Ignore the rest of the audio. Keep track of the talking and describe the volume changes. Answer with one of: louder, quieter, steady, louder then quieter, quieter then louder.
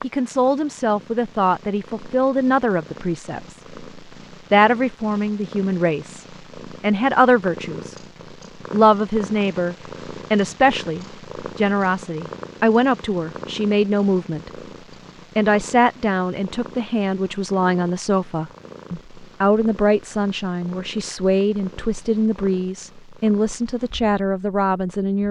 steady.